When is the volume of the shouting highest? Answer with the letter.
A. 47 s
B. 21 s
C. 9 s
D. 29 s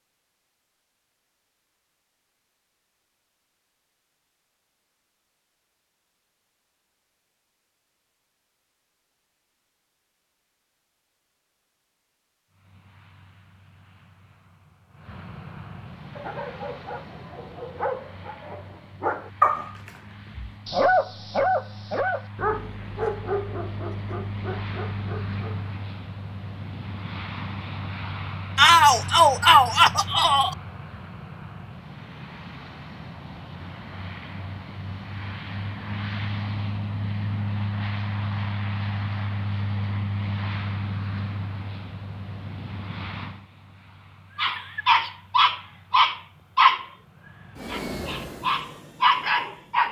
D.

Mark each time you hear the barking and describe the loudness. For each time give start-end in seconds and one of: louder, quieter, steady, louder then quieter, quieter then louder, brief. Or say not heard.
16.1-25.8 louder then quieter
44.4-46.9 brief
47.6-49.8 brief.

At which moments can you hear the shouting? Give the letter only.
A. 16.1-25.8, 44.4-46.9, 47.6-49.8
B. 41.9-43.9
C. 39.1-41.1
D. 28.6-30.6
D.